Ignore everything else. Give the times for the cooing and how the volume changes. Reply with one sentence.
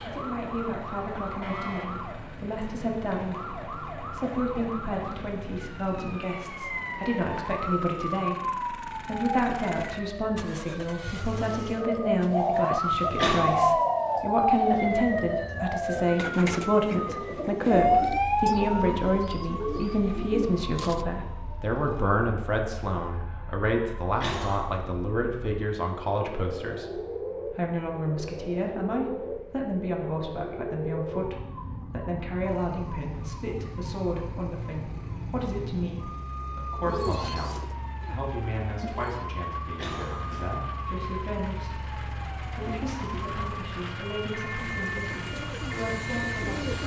The cooing can be heard from 11.7 to 21.1 s, getting quieter; briefly from 36.8 to 39.2 s; and briefly from 44.5 to 46.8 s.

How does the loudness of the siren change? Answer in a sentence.
The volume of the siren goes up, then down.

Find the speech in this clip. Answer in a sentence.
The speech can be heard from 0.0 to 46.8 s.